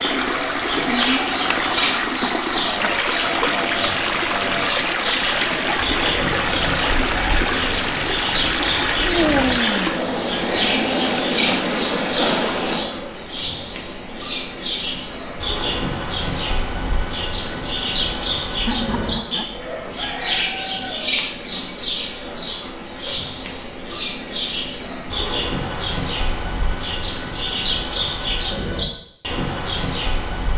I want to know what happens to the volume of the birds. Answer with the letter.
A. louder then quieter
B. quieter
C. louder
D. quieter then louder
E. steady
E.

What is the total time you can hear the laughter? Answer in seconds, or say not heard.
3 s.